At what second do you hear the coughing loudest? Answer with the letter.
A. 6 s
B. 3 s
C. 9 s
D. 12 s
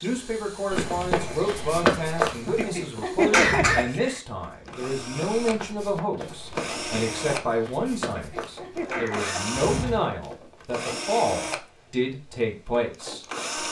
B.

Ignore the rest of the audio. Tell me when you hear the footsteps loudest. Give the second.
2 s.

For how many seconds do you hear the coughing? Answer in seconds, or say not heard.
3 s.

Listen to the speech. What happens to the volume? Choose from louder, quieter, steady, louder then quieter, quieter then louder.
steady.